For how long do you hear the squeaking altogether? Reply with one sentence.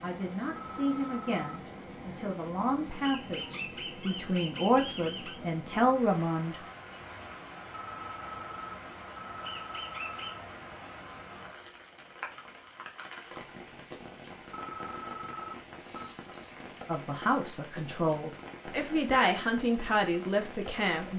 The squeaking can be heard for 4 seconds in total.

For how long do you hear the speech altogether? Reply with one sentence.
The speech can be heard for 11 seconds in total.